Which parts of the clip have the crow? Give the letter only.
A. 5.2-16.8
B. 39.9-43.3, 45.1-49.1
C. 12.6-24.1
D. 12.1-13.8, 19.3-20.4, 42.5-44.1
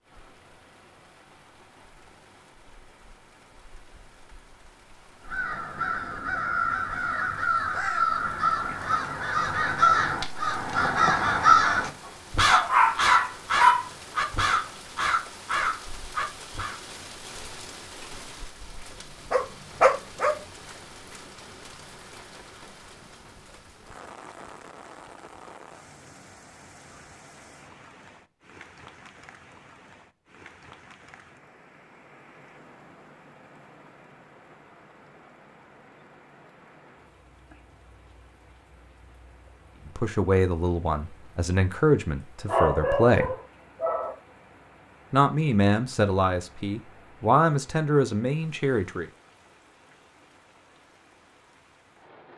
A.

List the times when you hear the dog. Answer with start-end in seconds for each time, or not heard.
12.1-13.8, 19.3-20.4, 42.5-44.1.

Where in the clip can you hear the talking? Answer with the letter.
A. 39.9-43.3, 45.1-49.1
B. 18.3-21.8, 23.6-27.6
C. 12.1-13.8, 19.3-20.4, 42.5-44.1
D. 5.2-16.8
A.